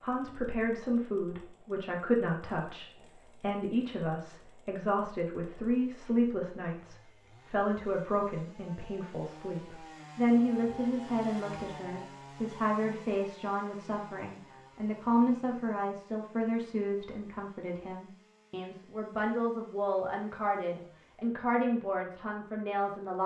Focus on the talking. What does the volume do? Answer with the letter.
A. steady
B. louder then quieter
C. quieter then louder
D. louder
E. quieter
A.